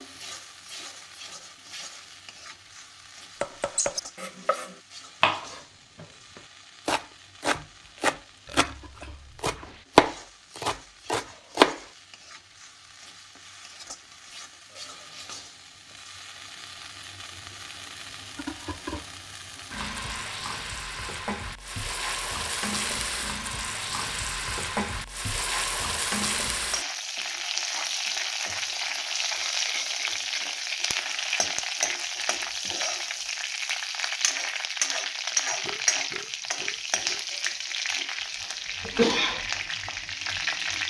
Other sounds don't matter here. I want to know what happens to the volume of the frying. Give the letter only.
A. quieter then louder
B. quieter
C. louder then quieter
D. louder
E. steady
D.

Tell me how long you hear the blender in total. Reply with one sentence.
You can't hear the blender here.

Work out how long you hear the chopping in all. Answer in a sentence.
The chopping can be heard for 8 seconds in total.